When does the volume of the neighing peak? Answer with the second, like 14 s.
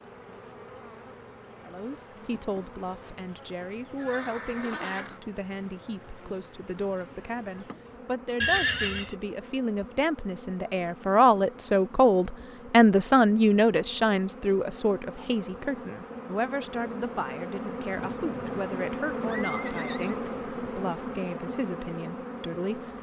9 s.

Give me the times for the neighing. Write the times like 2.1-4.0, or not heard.
4.0-5.2, 8.4-9.2, 17.9-20.1.